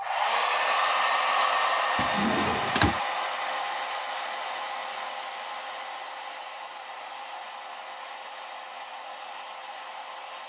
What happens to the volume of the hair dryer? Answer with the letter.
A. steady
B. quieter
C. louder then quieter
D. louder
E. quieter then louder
B.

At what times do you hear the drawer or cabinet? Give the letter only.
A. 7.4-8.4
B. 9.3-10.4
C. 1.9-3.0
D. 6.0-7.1
C.